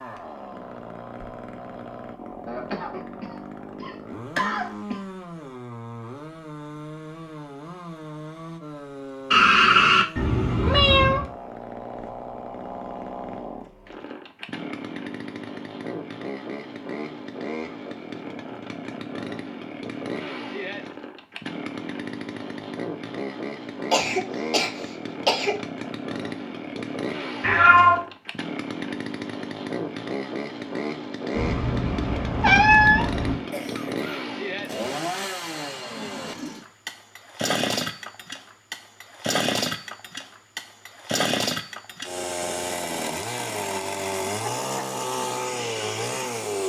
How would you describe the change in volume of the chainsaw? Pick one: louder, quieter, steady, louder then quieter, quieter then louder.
louder.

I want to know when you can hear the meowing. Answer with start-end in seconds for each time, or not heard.
9.3-11.2, 27.4-28.1, 31.3-33.4.